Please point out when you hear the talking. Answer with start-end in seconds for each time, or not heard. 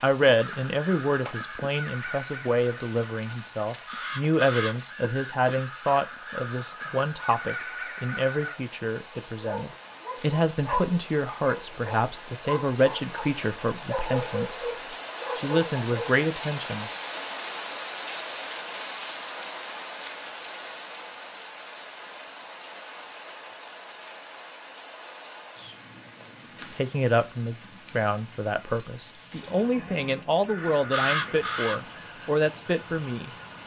0.0-16.9, 26.7-33.3.